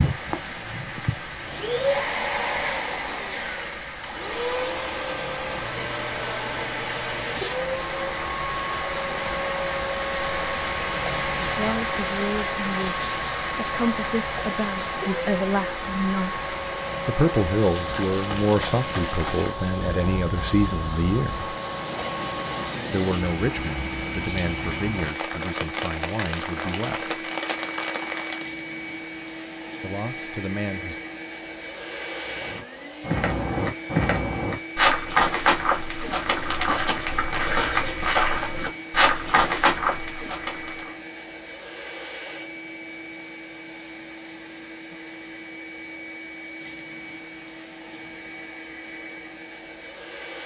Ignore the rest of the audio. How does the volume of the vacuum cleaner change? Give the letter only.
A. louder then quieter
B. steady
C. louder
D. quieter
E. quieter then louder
D.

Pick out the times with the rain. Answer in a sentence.
You can hear the rain from 0.0 to 28.5 s.